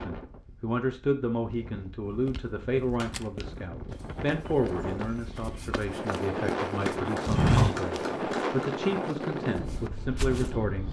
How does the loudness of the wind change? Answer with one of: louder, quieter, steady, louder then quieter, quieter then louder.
louder.